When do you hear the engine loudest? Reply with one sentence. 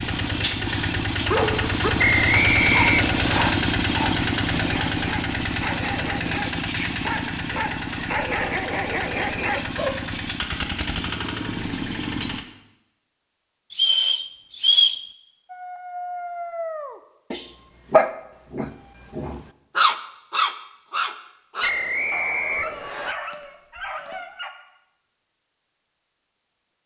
The loudest moment of the engine is at 3 seconds.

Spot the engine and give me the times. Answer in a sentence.
You can hear the engine from 0.0 to 12.4 s.